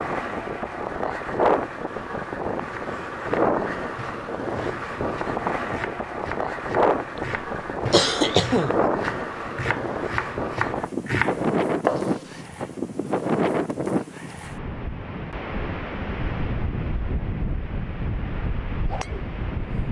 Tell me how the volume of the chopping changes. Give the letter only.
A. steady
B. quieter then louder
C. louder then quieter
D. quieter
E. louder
E.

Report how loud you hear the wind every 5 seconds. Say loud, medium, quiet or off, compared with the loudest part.
loud, loud, loud, medium.